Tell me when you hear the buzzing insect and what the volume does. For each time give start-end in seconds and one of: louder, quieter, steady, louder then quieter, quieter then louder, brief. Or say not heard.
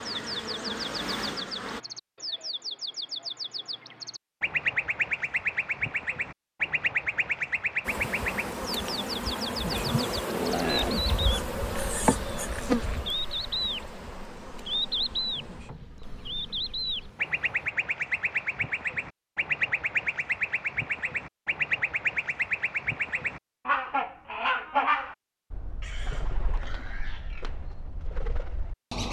0.0-1.8 brief
7.8-17.7 quieter.